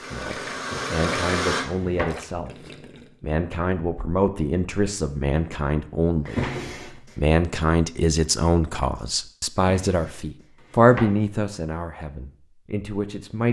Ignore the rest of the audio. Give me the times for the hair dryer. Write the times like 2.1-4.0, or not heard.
0.0-1.6.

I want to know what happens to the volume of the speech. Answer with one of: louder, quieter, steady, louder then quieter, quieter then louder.
louder then quieter.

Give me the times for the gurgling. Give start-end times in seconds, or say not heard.
0.0-3.2.